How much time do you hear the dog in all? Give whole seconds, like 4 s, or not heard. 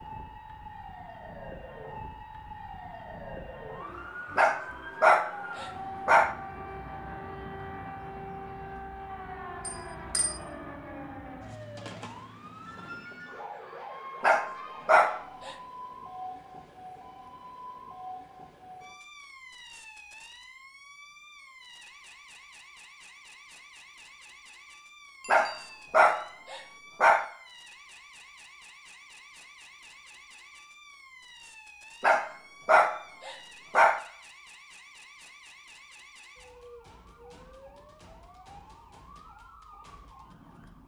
7 s.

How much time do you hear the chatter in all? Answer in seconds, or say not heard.
not heard.